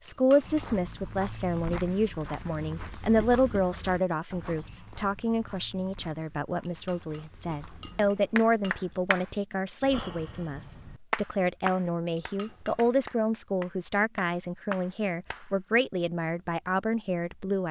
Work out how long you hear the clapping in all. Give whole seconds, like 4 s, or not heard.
7 s.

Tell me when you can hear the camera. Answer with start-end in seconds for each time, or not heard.
not heard.